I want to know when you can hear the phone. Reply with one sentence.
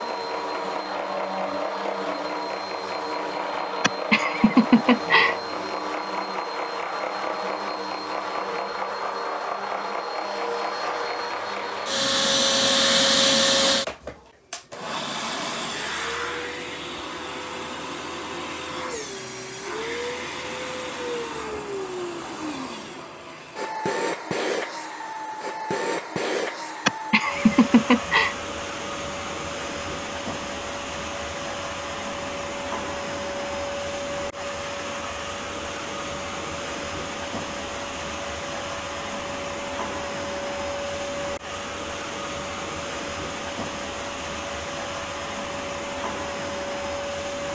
The phone can't be heard in this clip.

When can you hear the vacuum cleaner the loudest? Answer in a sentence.
The loudest moment of the vacuum cleaner is at 13 seconds.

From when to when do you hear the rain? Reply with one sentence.
You can't hear the rain here.